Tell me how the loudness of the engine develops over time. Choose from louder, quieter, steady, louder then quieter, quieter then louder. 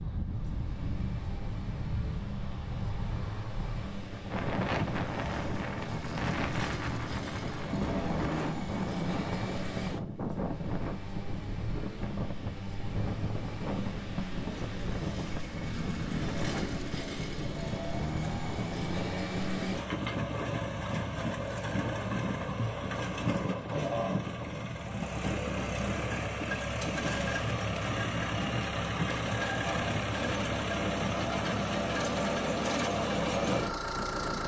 louder.